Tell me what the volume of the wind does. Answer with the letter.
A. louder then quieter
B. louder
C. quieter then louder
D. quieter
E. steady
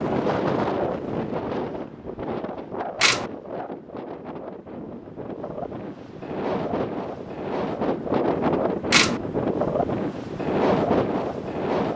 C.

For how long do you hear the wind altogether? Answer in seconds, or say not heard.
12 s.